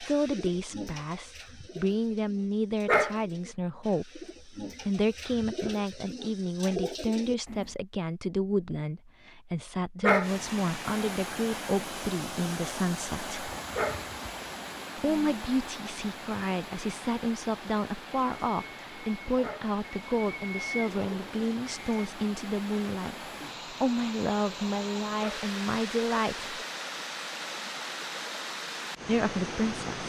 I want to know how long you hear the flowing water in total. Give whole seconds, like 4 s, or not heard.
20 s.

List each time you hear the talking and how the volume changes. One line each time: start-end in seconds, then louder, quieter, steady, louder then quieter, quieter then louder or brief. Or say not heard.
0.0-13.6 steady
14.9-26.6 steady
29.1-30.0 brief.